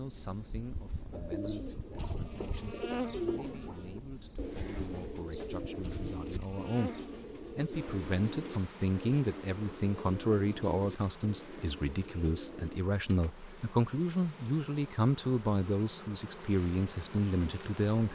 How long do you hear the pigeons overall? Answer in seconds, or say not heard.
12 s.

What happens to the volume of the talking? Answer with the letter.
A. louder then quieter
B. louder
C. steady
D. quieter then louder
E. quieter
B.